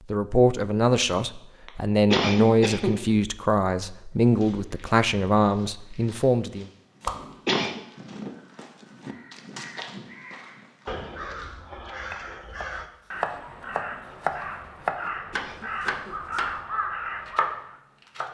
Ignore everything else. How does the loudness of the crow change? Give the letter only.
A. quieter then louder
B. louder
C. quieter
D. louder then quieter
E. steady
B.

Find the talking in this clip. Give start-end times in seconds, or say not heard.
0.1-6.7.